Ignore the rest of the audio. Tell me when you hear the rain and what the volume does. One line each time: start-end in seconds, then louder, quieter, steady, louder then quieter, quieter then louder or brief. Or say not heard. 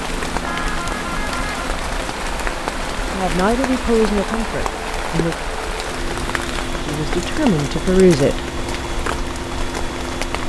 0.0-10.4 steady.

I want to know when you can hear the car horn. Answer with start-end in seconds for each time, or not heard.
0.5-1.7.